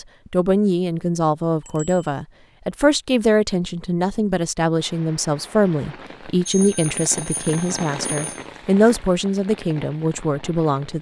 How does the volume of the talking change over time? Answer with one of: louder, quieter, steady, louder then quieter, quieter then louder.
steady.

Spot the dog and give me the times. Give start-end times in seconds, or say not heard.
not heard.